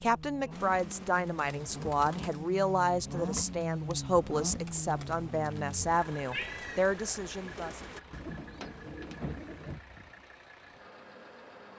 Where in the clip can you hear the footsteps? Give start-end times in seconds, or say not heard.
not heard.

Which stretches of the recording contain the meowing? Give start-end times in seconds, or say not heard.
6.3-6.8.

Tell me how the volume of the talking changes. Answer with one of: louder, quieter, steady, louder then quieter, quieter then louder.
steady.